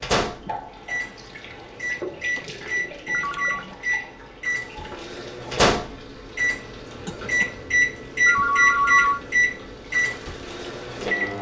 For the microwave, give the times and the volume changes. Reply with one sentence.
You can hear the microwave from 0.0 to 11.3 s, getting louder.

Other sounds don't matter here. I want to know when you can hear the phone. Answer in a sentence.
You can hear the phone from 2.4 to 3.8 s and from 8.2 to 9.2 s.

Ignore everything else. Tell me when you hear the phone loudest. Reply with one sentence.
The loudest moment of the phone is at 9 seconds.